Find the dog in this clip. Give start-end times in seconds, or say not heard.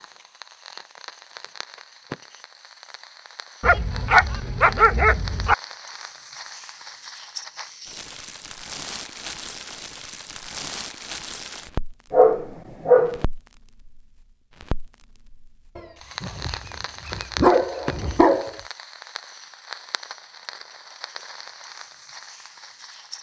3.6-5.5, 12.1-13.2, 15.8-18.5.